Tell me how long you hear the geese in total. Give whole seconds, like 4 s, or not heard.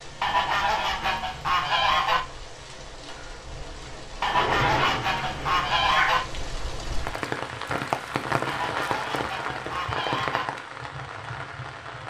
6 s.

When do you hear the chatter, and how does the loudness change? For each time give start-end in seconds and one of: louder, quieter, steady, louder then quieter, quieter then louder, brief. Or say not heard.
not heard.